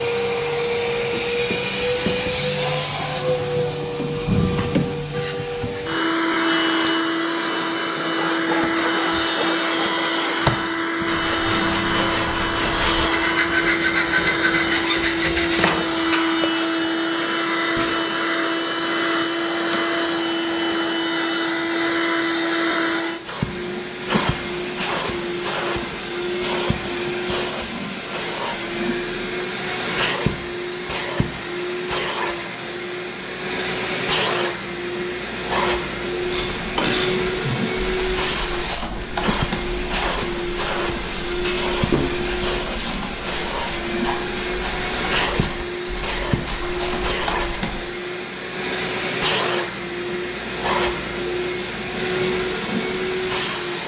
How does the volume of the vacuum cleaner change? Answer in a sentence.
The volume of the vacuum cleaner stays about the same.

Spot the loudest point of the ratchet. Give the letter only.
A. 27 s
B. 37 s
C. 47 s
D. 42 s
B.